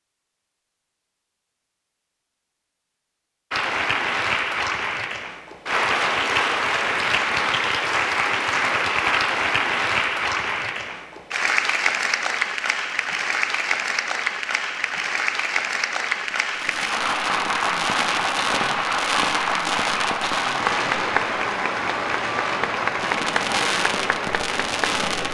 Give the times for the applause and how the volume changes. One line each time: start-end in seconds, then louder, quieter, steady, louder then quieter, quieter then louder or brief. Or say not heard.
3.5-25.2 steady.